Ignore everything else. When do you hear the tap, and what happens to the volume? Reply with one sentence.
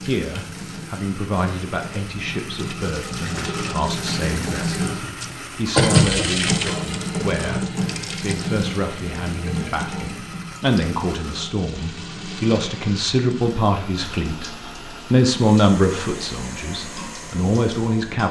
You can hear the tap from 0.0 to 18.2 s, getting louder then quieter.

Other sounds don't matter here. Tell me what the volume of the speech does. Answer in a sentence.
The loudness of the speech goes up.